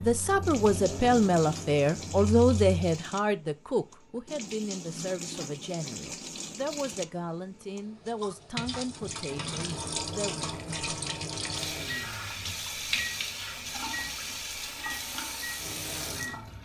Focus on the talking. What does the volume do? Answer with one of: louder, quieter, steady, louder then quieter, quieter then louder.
quieter.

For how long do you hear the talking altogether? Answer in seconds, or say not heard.
10 s.